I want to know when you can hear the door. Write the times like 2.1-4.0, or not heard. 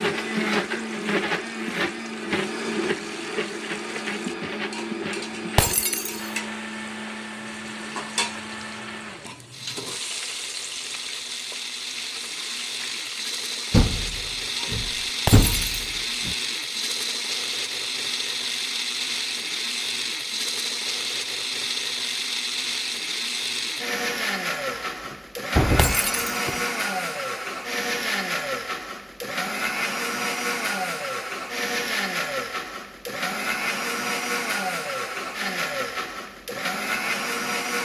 13.7-16.4, 24.9-26.6.